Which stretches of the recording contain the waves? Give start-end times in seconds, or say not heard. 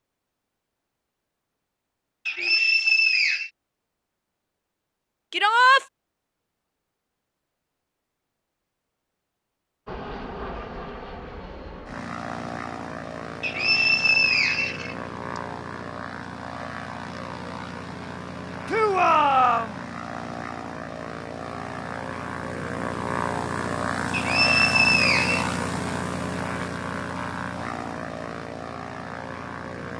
not heard.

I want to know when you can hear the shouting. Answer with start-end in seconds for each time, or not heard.
5.3-5.8, 18.6-19.8.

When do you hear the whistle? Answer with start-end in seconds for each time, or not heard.
2.2-3.5, 13.4-14.9, 24.1-25.6.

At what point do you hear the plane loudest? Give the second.
25 s.